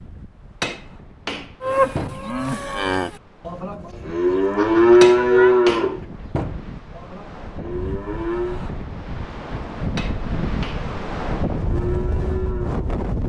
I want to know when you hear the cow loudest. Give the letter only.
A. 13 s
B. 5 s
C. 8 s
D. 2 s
B.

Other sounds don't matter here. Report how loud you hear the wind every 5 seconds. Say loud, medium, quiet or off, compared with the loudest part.
quiet, medium, loud.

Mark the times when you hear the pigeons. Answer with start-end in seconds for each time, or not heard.
not heard.